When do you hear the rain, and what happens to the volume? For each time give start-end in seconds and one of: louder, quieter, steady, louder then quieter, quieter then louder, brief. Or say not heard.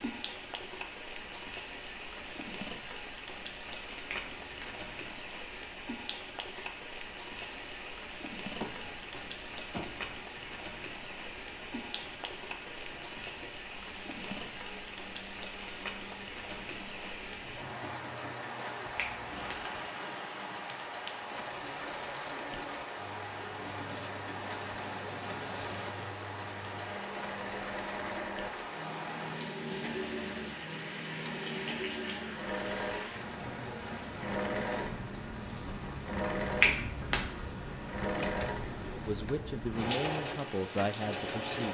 0.0-41.7 steady.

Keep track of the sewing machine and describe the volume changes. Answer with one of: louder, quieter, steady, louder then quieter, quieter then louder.
louder.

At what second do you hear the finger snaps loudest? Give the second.
37 s.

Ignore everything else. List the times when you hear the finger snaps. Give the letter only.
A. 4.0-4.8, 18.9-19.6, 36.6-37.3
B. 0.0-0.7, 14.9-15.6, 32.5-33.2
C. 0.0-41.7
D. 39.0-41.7
A.